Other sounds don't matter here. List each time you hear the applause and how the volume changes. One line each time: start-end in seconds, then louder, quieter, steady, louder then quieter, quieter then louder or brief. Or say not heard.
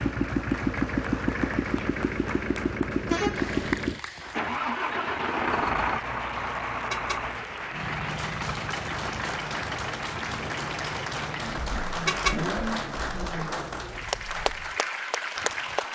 0.0-15.9 louder.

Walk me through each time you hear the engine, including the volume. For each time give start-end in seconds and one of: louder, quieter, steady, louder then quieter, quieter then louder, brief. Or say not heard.
0.0-15.9 quieter.